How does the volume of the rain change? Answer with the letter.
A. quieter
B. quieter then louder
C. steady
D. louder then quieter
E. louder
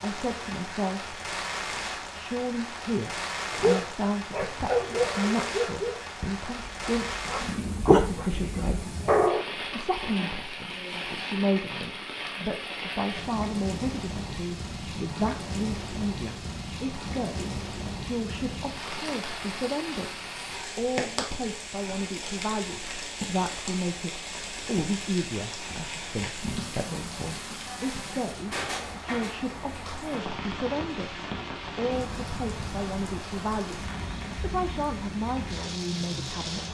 C.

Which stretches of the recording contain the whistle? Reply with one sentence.
The whistle can't be heard in this clip.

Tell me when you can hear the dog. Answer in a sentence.
You can hear the dog from 3.5 to 9.5 s.